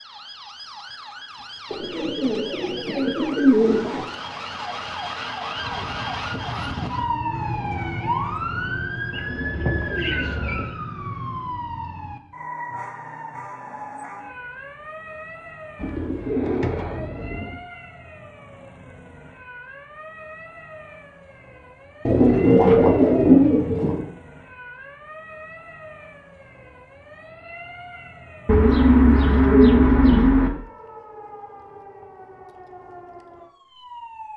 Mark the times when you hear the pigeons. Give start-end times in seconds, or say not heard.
1.7-4.0, 9.1-10.8, 15.8-17.6, 22.1-24.1, 28.4-30.5.